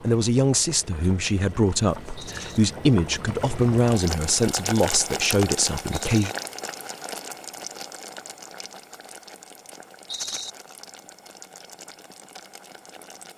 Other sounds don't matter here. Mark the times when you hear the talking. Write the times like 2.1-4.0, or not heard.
0.0-6.3.